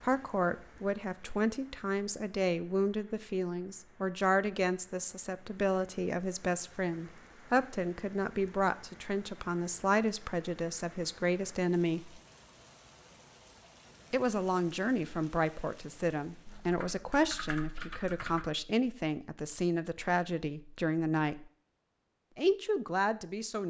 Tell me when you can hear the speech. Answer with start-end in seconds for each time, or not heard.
0.0-12.2, 14.1-21.4, 22.4-23.6.